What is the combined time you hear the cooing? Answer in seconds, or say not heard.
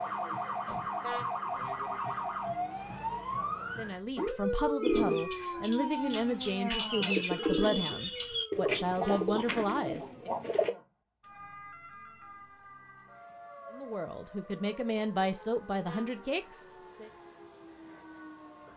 6 s.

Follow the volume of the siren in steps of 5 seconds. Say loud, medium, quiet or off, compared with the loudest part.
loud, loud, quiet, quiet.